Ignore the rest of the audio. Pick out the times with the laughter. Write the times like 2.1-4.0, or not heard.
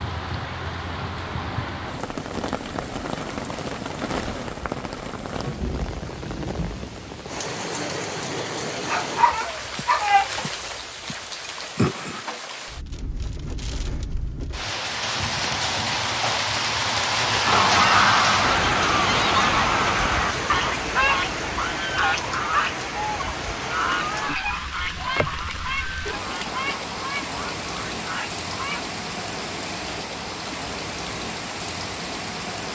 not heard.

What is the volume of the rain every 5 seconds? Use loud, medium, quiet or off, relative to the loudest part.
medium, medium, medium, loud, medium, medium, medium.